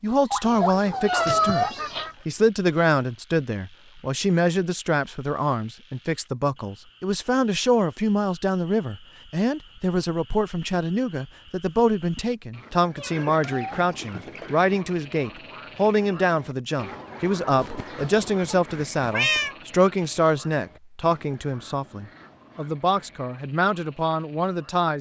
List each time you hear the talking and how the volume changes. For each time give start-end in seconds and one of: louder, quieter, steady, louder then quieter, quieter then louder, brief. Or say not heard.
0.0-24.9 steady.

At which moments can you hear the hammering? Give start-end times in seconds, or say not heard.
not heard.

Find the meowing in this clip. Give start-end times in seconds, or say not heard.
0.3-2.0, 12.9-13.8, 17.6-19.6.